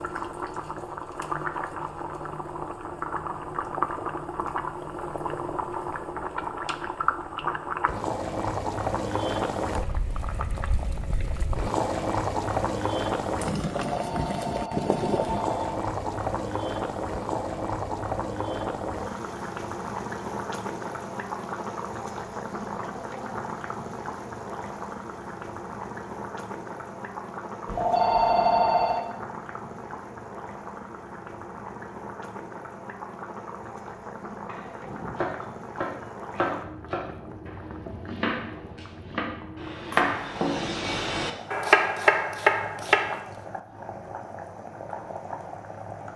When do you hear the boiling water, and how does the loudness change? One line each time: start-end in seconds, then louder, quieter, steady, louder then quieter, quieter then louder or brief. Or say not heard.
0.0-46.1 quieter.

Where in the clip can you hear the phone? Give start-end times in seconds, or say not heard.
13.9-15.7, 27.6-29.0.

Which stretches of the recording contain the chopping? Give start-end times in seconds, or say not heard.
34.5-43.1.